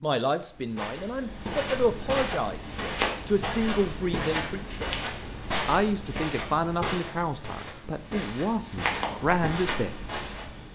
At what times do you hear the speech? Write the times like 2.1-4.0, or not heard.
0.0-4.9, 5.7-9.9.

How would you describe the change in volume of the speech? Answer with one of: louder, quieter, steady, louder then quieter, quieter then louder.
steady.